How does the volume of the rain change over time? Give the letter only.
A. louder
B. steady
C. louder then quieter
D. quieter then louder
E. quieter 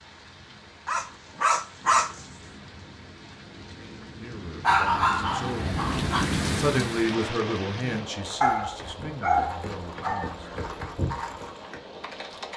C.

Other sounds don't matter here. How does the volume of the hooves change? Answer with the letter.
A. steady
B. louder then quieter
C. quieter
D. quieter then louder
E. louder
B.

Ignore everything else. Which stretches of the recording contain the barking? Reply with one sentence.
The barking can be heard from 0.8 to 2.2 s, from 4.6 to 6.2 s and from 8.4 to 10.3 s.